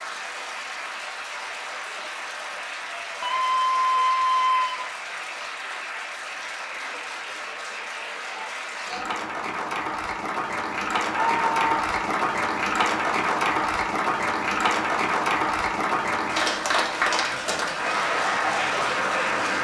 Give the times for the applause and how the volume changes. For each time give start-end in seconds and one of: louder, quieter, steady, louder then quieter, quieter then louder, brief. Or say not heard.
0.0-19.5 louder.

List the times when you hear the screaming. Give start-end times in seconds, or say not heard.
3.2-4.8, 11.1-11.6.